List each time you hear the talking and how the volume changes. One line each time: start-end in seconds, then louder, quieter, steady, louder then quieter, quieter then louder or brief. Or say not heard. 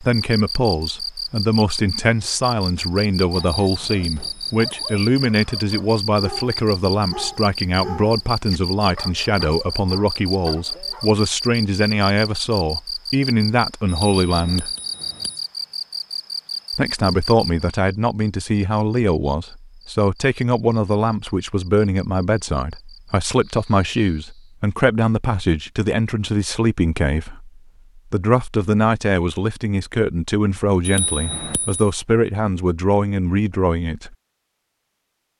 0.0-14.7 steady
16.7-34.1 steady.